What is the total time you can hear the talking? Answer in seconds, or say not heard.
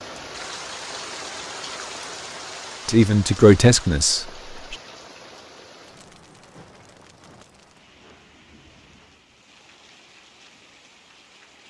2 s.